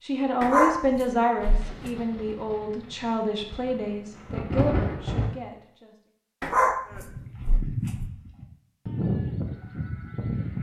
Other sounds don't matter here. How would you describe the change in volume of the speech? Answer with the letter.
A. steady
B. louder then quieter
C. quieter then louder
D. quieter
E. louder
D.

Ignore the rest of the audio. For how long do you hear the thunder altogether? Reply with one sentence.
You can hear the thunder for 4 seconds altogether.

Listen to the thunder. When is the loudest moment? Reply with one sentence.
The volume of the thunder peaks at 5 seconds.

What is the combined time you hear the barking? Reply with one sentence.
The barking can be heard for 3 seconds in total.